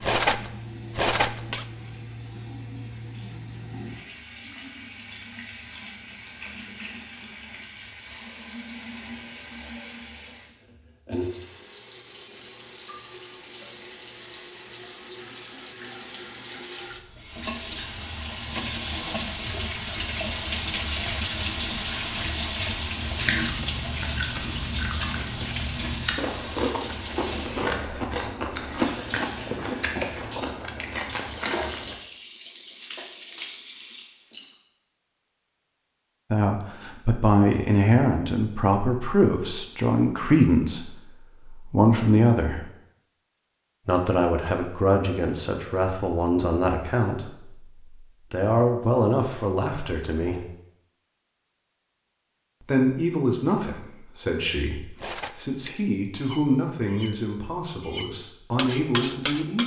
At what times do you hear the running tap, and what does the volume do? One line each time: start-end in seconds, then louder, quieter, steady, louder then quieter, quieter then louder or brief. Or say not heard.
0.0-34.5 louder then quieter.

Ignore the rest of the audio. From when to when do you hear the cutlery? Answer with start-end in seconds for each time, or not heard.
0.0-1.6, 55.0-59.6.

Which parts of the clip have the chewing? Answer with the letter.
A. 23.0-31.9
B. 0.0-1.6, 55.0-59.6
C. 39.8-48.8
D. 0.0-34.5
A.